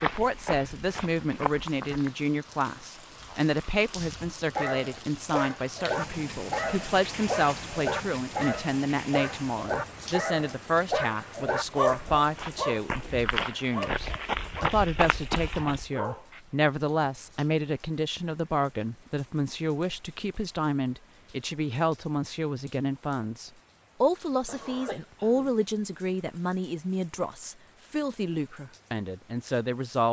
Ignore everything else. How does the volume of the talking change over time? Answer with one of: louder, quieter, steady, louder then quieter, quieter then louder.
steady.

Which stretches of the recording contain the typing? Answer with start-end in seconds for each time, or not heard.
not heard.